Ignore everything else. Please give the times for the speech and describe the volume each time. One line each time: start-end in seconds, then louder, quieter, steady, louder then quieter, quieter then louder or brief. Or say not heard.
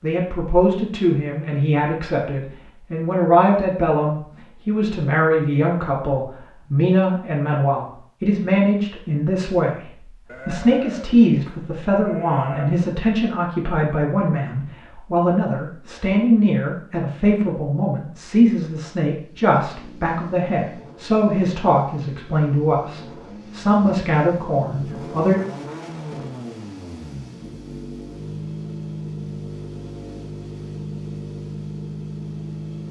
0.0-25.4 steady.